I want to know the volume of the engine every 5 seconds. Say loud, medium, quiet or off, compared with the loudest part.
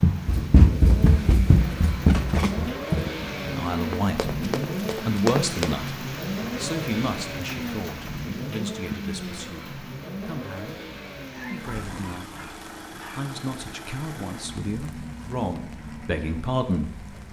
loud, loud, medium, medium.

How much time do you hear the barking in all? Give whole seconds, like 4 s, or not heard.
2 s.